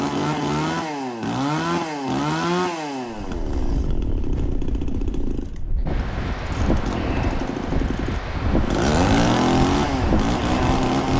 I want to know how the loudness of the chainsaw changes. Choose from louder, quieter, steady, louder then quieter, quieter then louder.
quieter then louder.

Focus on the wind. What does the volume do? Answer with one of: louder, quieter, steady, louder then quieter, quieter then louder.
louder.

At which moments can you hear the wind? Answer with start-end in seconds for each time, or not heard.
3.4-10.9.